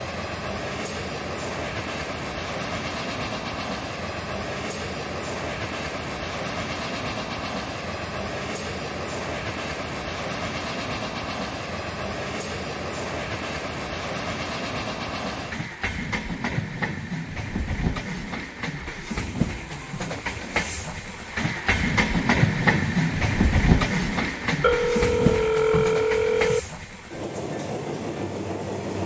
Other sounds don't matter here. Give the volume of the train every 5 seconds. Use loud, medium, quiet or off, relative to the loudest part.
medium, medium, medium, medium, loud, medium.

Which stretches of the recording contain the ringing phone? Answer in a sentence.
You can hear the ringing phone from 24.6 to 26.6 s.